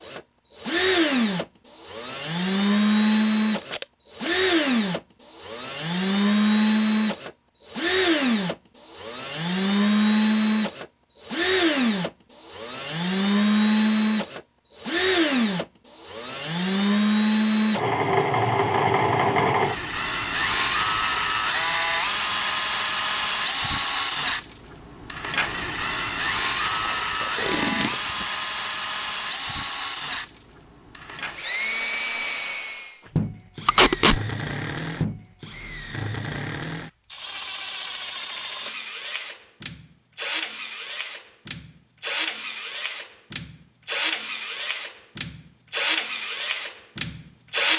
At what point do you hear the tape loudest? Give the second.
34 s.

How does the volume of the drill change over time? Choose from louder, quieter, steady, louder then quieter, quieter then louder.
quieter.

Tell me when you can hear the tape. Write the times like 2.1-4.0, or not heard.
3.6-4.3, 26.7-27.9, 33.6-34.2.